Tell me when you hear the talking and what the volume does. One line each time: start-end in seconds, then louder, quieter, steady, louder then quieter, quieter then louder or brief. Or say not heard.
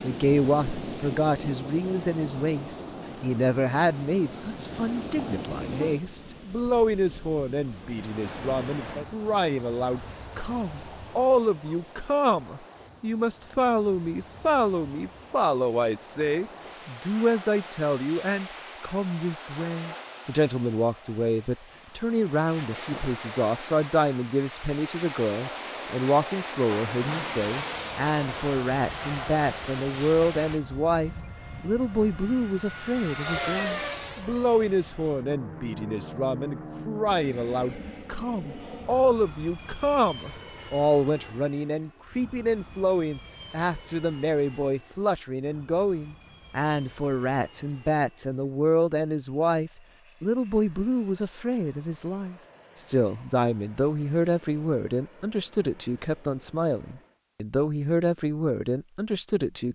0.0-59.7 steady.